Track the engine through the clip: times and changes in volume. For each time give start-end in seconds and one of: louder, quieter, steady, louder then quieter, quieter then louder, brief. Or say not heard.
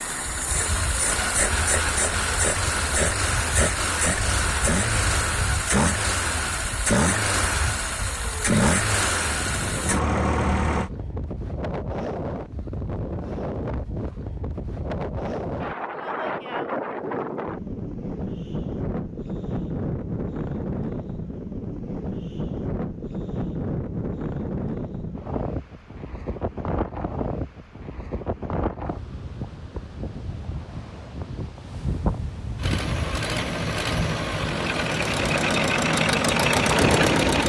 0.0-10.9 steady
32.5-37.4 louder.